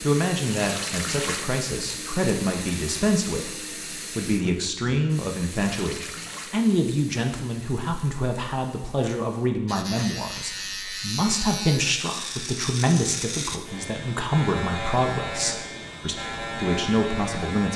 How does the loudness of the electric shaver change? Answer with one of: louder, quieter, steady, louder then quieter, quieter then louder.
steady.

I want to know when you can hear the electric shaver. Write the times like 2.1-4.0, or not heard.
9.7-17.7.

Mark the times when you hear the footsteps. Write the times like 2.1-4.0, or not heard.
not heard.